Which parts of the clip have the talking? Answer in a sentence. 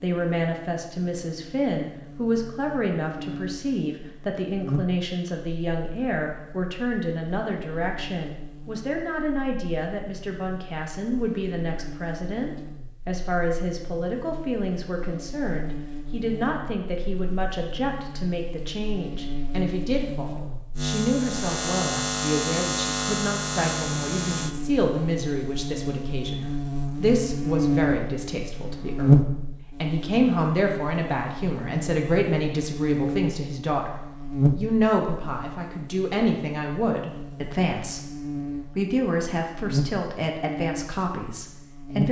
The talking can be heard from 0.0 to 38.1 s and from 38.8 to 42.0 s.